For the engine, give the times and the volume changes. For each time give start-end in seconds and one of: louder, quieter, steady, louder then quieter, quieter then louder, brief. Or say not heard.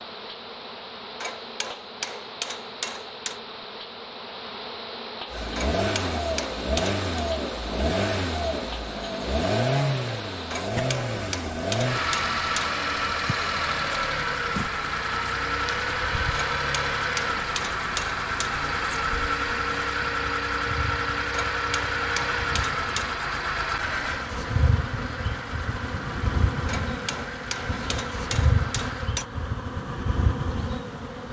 5.2-29.1 quieter.